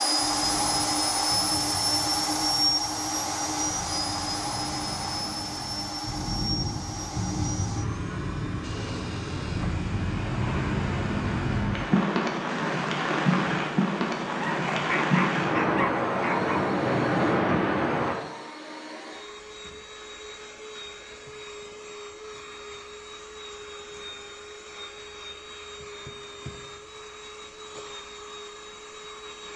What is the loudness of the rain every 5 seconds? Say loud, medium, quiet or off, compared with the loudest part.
quiet, medium, loud, loud, off, off.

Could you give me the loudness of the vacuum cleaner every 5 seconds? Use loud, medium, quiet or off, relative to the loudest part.
loud, medium, quiet, quiet, quiet, quiet.